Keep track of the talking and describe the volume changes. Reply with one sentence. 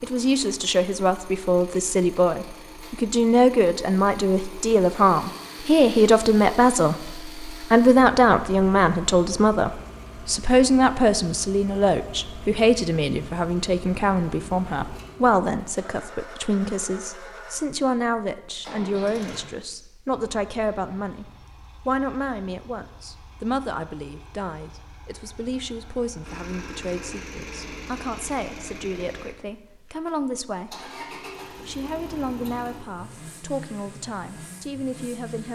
The loudness of the talking goes down.